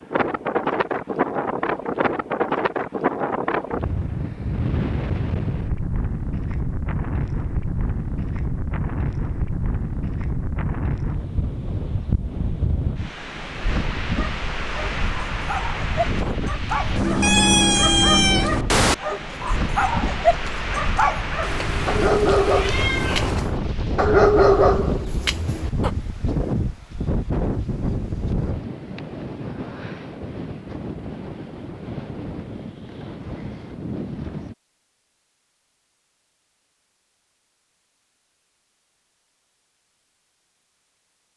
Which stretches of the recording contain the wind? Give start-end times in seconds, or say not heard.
0.0-34.5.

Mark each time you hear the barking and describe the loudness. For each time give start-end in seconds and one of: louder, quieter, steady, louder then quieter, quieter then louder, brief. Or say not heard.
14.2-25.9 louder.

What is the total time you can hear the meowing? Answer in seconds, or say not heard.
4 s.